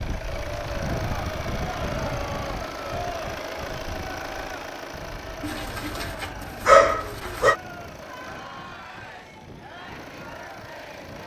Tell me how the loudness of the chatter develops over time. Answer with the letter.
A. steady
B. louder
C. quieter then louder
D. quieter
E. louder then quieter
D.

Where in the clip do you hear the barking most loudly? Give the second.
7 s.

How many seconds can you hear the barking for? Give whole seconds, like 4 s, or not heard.
2 s.